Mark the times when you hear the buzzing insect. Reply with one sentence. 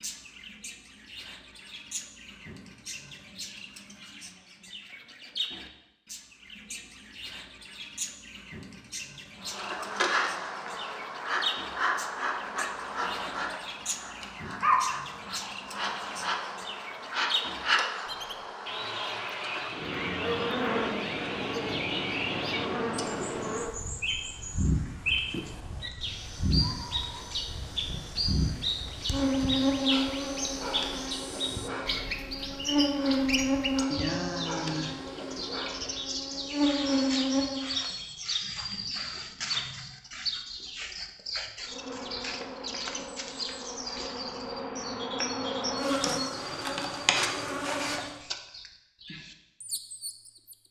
You can hear the buzzing insect from 9.4 to 37.7 s and from 41.6 to 48.1 s.